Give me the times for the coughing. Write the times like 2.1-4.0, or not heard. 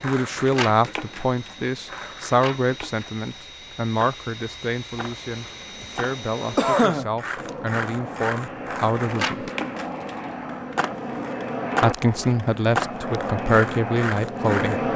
6.5-7.5.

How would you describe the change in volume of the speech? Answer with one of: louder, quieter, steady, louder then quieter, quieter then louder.
quieter then louder.